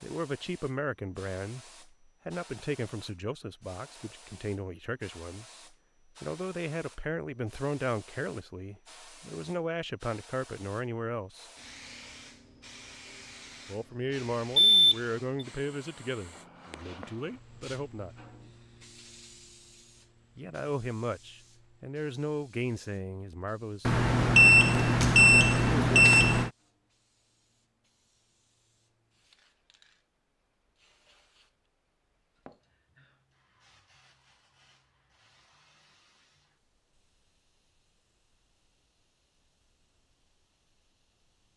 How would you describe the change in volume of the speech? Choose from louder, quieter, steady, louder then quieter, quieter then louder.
steady.